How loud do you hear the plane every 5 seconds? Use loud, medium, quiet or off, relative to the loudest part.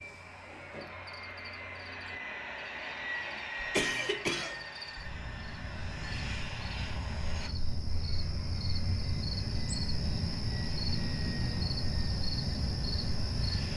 loud, medium, medium.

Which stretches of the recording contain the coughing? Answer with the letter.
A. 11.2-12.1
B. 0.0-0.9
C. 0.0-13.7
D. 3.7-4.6
D.